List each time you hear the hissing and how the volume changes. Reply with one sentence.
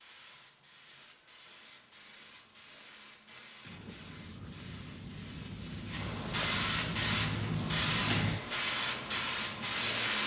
The hissing can be heard from 0.0 to 10.2 s, getting louder.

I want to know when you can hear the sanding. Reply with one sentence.
The sanding can be heard from 3.3 to 8.4 s.